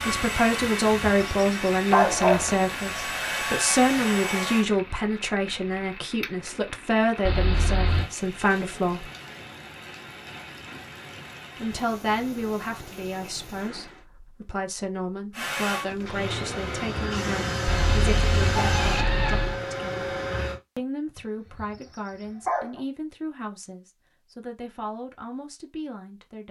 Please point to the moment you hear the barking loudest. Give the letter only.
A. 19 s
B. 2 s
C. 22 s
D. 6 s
B.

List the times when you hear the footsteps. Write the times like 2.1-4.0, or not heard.
not heard.